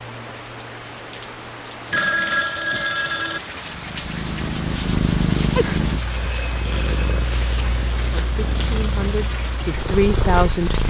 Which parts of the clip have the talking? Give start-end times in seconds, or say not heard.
8.2-10.8.